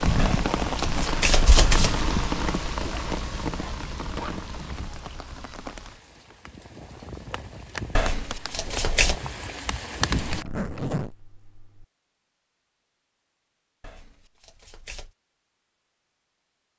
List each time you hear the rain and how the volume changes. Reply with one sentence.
You can hear the rain from 0.0 to 10.4 s, getting quieter then louder.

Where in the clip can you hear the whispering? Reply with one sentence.
You can't hear the whispering here.